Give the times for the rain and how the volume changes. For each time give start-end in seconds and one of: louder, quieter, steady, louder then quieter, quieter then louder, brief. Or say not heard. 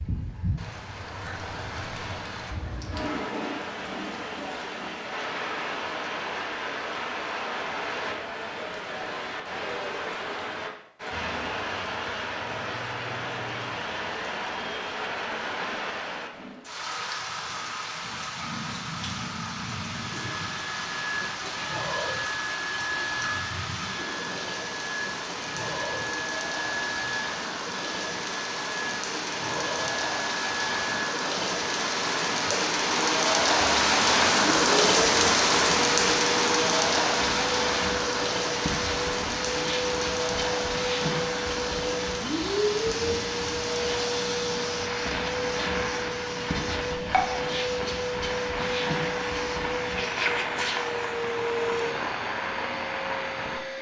0.0-53.6 louder then quieter.